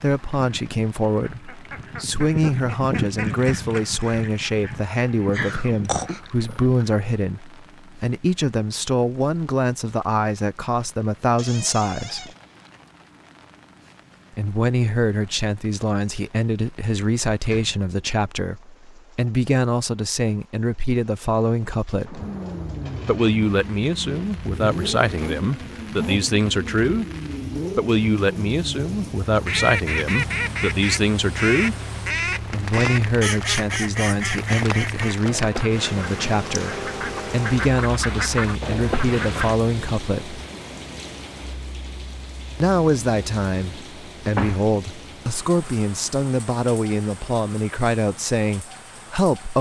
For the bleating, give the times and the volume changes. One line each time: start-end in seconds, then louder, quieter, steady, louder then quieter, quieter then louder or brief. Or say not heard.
not heard.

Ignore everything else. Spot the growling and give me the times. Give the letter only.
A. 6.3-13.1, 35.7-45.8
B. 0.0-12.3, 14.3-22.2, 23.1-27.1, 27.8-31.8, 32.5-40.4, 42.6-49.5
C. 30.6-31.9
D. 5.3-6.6
D.